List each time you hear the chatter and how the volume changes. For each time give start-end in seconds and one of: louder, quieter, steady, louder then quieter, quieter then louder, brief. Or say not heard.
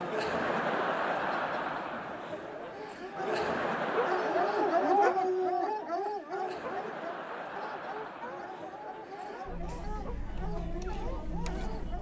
0.0-11.9 quieter.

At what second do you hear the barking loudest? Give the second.
5 s.